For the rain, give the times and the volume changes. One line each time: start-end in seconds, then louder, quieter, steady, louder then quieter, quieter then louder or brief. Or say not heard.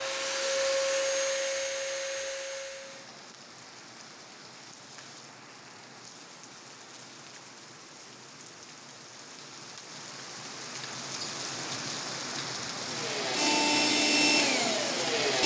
2.6-15.4 louder.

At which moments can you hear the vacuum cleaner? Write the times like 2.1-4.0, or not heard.
0.0-3.1, 12.8-15.4.